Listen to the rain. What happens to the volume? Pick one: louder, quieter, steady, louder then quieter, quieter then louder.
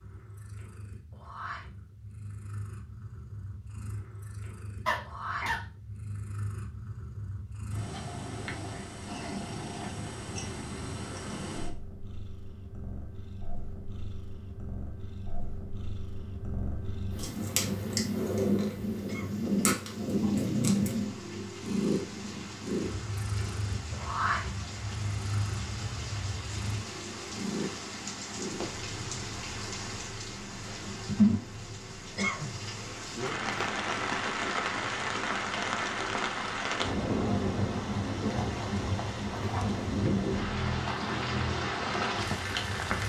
louder.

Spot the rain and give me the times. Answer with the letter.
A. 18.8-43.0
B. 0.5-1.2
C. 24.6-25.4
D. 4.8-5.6
A.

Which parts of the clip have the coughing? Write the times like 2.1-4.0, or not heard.
4.8-5.6.